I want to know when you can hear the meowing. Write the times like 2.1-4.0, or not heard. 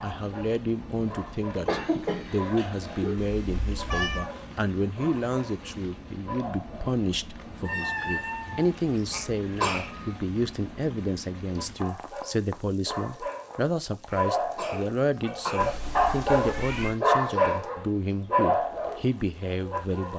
3.1-4.3, 7.7-9.2, 15.6-17.0.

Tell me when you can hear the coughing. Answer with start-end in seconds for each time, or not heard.
1.6-3.1, 9.1-10.2, 14.1-15.8.